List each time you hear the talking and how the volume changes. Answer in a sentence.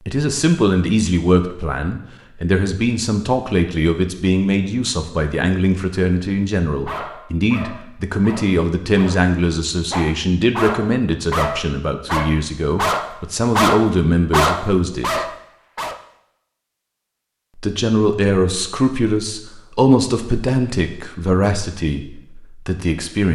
The talking can be heard from 0.1 to 15.2 s, at a steady volume; and from 17.6 to 23.3 s, getting quieter.